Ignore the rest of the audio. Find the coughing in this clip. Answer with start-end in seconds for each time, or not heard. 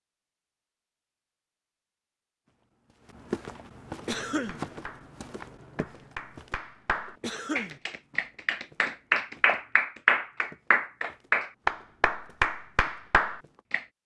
4.0-4.6, 7.2-7.8.